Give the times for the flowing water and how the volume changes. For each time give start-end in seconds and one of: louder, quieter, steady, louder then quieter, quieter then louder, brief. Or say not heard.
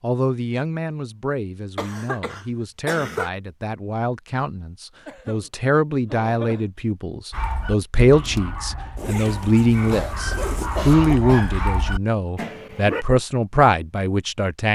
not heard.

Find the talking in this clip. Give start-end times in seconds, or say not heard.
0.0-14.7.